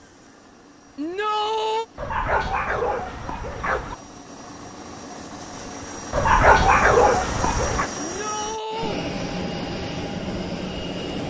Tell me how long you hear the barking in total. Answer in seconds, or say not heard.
4 s.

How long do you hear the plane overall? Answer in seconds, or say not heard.
11 s.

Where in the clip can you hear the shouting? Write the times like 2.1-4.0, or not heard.
0.9-1.9, 8.0-9.1.